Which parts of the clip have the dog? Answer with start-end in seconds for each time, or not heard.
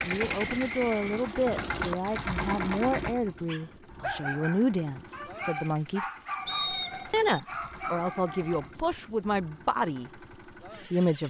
3.5-9.0.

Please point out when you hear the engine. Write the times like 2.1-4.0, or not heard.
0.0-11.2.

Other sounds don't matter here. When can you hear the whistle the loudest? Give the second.
7 s.